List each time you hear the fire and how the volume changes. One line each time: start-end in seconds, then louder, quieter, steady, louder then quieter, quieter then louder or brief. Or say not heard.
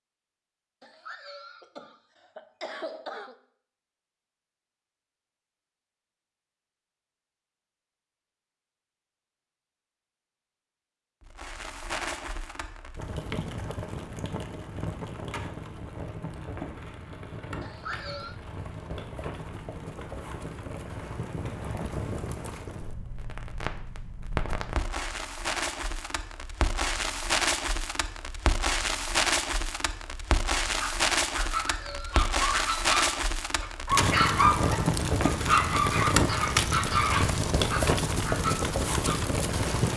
11.2-39.9 louder.